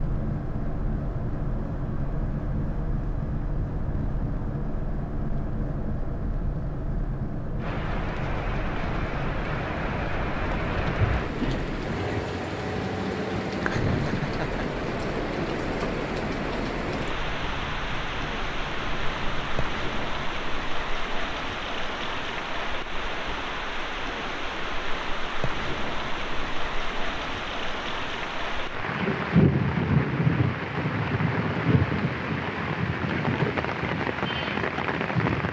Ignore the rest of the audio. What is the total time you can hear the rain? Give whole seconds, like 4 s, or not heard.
28 s.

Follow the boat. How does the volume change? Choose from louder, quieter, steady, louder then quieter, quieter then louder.
quieter.